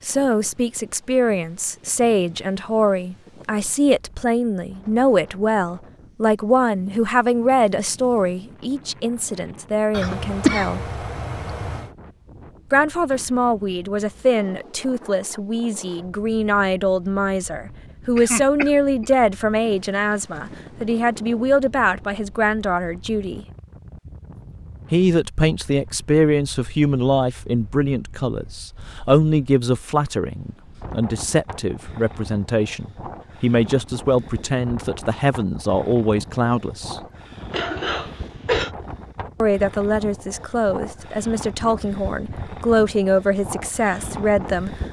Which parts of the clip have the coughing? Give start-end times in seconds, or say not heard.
9.9-11.9, 18.1-19.1, 37.5-38.7.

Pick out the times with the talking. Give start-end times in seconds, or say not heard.
0.0-10.8, 12.7-23.4, 24.9-37.0, 39.4-44.8.